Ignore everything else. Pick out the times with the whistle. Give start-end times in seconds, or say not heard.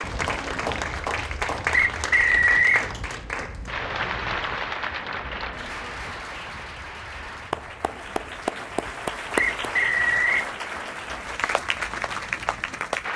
1.7-2.9, 9.3-10.4.